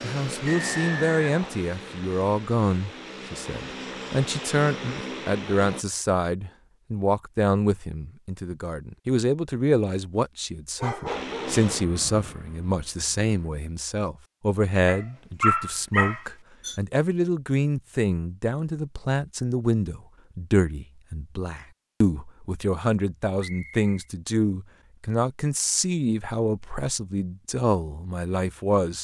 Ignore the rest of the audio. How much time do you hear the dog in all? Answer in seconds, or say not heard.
3 s.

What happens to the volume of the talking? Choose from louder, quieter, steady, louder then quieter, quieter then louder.
steady.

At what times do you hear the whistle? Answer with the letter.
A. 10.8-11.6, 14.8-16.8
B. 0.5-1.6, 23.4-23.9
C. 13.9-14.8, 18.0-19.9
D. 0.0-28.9
B.